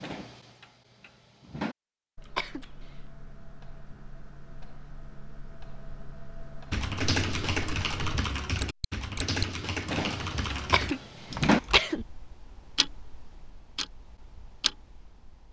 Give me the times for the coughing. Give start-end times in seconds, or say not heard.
2.2-3.0, 10.6-12.1.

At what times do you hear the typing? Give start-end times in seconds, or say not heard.
6.7-11.8.